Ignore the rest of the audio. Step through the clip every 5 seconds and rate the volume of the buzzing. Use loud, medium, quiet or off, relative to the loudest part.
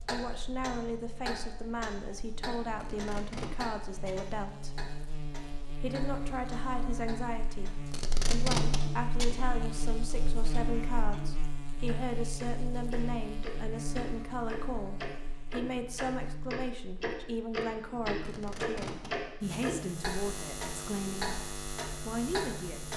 medium, loud, loud, medium, loud.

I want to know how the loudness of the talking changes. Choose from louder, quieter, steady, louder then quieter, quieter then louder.
steady.